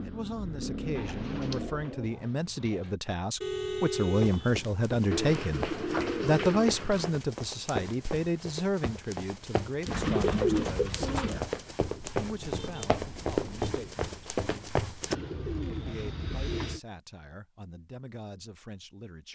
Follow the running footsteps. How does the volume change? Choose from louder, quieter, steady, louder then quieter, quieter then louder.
louder.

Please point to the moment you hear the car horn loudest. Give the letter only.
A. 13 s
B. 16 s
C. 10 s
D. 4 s
D.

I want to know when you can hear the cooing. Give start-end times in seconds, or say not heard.
0.9-2.9, 5.1-7.1, 9.8-11.4, 15.1-16.8.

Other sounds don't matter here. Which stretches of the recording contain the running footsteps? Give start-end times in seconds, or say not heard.
4.2-15.2.